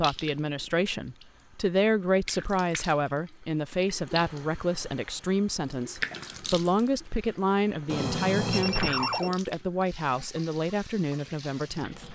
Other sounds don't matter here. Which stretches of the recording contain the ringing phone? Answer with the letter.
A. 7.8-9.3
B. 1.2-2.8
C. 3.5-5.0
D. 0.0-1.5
A.